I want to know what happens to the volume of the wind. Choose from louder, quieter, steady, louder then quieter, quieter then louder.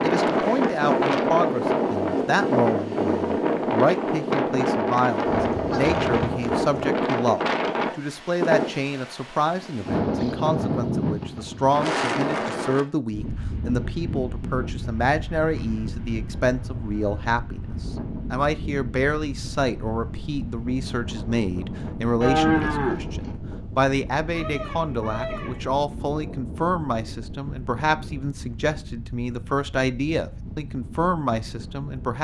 quieter.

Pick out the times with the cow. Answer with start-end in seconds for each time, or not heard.
22.2-23.4.